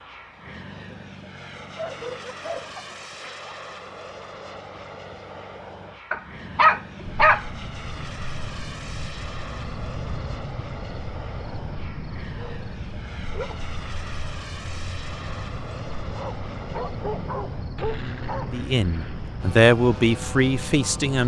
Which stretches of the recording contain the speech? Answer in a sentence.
You can hear the speech from 18.5 to 21.2 s.